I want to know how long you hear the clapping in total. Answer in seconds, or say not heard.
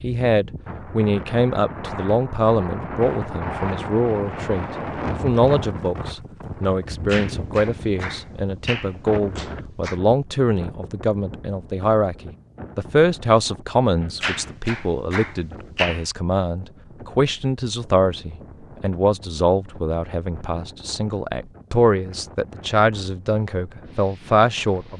5 s.